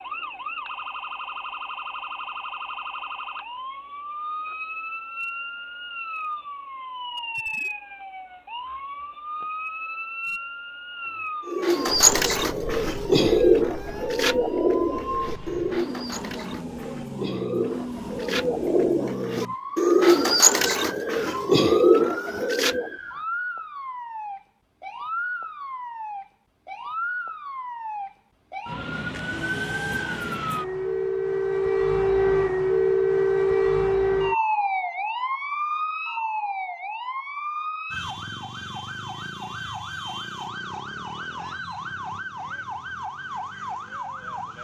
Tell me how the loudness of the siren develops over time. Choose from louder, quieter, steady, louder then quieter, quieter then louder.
louder then quieter.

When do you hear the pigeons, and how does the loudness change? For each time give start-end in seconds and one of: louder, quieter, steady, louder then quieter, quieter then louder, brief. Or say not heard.
11.4-22.9 quieter then louder.